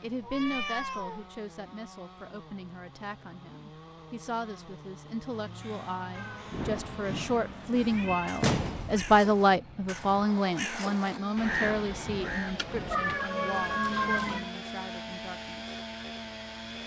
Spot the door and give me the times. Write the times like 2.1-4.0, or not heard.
8.4-9.1.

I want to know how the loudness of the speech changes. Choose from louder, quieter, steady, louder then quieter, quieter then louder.
louder then quieter.